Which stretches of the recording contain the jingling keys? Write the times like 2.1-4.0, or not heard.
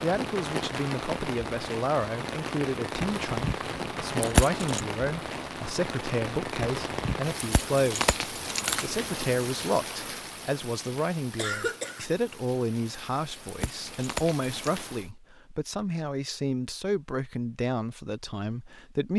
4.2-4.8, 7.4-9.2, 13.4-14.8.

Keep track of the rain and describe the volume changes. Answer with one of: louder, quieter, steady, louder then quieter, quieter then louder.
quieter.